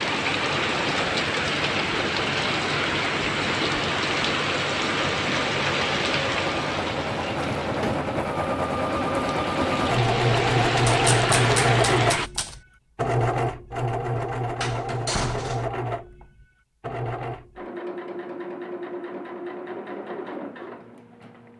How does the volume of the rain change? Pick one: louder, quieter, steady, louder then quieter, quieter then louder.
quieter then louder.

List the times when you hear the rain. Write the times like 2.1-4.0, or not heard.
0.0-12.3.